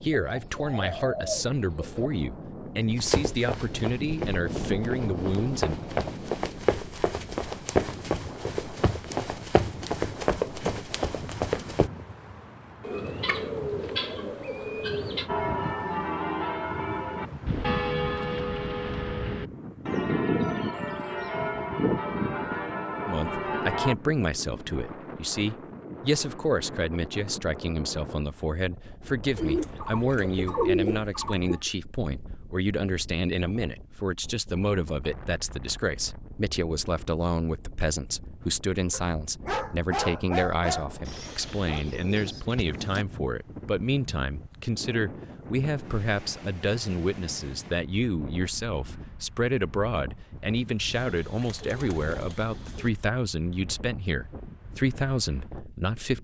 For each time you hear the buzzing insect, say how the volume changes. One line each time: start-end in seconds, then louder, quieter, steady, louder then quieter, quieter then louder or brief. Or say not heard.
not heard.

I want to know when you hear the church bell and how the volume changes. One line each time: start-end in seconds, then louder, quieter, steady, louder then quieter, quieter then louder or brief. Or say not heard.
15.2-23.9 steady.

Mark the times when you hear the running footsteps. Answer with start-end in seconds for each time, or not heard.
3.0-11.9.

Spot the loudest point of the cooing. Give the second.
31 s.